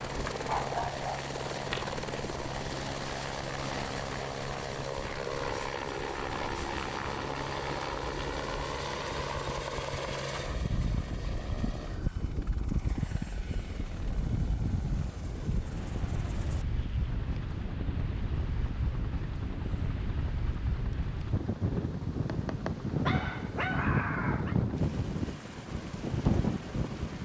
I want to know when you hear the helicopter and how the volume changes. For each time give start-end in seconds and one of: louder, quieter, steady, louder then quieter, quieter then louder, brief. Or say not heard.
0.0-27.1 quieter.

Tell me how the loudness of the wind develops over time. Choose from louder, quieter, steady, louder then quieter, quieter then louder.
louder.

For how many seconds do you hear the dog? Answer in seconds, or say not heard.
3 s.